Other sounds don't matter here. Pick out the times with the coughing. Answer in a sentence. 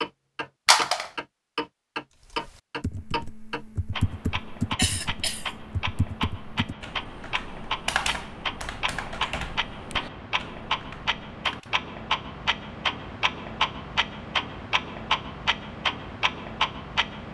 You can hear the coughing from 4.8 to 5.5 s.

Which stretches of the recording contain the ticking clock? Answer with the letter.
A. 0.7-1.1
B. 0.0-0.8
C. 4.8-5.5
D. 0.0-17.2
D.